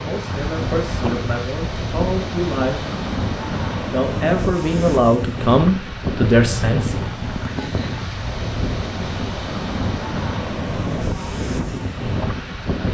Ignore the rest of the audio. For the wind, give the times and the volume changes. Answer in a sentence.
You can hear the wind from 0.0 to 12.8 s, at a steady volume.